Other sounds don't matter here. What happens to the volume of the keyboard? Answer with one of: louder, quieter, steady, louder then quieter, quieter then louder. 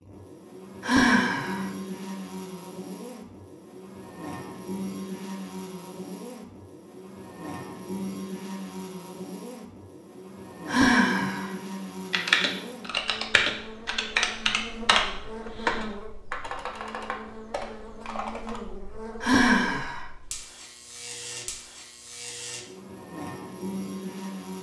quieter.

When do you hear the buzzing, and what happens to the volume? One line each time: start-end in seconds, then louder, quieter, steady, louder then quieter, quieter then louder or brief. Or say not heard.
0.0-24.5 steady.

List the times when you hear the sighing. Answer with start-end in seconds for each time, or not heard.
0.8-1.6, 10.7-11.5, 19.2-20.1.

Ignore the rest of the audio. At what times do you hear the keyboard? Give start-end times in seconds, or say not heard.
12.1-18.6.